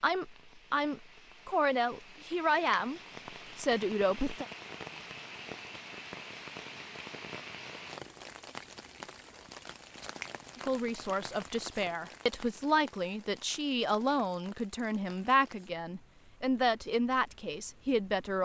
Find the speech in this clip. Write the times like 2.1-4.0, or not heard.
0.0-4.5, 10.6-18.4.